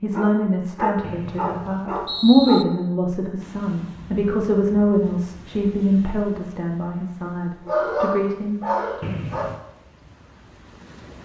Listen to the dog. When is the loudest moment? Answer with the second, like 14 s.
8 s.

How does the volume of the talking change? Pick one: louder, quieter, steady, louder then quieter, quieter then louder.
louder then quieter.